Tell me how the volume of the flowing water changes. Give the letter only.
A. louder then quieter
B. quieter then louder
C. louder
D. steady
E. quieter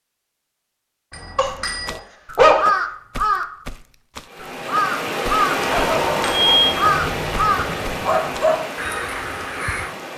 E.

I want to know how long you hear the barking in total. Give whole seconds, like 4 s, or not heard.
4 s.